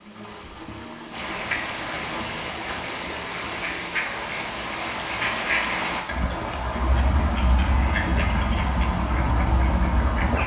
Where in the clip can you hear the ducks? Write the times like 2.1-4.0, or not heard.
1.1-10.4.